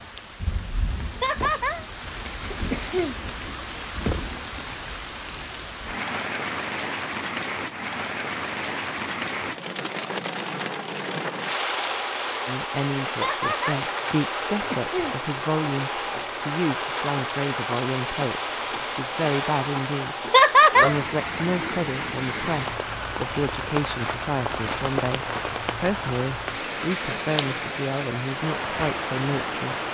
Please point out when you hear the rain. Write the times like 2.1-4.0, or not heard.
0.0-29.8.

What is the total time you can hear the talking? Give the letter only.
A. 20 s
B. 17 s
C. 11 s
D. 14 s
B.